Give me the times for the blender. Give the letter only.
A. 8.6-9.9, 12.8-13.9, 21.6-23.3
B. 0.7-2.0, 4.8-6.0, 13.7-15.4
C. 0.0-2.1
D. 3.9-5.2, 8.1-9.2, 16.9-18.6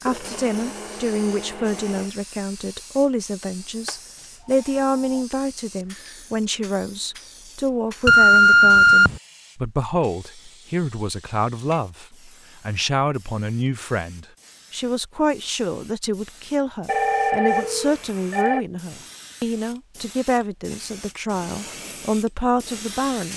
C.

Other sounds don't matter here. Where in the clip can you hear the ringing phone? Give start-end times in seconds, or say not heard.
3.9-5.2, 8.1-9.2, 16.9-18.6.